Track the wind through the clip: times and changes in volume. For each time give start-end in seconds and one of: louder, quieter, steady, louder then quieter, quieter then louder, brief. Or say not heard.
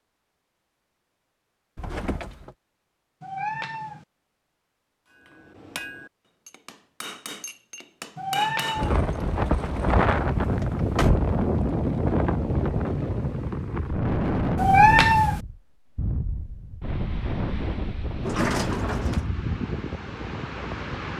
8.8-21.1 quieter.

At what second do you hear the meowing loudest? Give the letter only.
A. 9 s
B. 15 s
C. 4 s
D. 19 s
B.